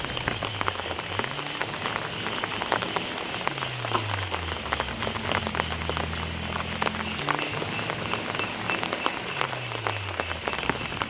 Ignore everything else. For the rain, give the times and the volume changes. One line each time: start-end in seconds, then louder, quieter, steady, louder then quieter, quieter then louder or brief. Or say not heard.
0.0-11.0 steady.